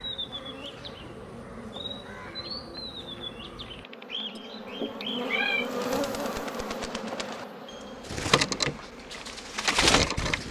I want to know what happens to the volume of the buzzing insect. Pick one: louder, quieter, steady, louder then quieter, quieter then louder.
louder then quieter.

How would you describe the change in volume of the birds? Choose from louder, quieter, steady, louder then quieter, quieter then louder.
louder.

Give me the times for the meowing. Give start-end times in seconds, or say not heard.
4.3-5.7.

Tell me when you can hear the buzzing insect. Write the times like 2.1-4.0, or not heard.
0.0-10.4.